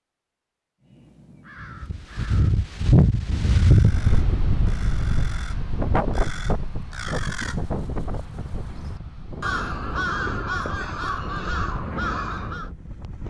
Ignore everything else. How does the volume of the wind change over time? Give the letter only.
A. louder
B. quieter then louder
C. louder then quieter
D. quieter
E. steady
D.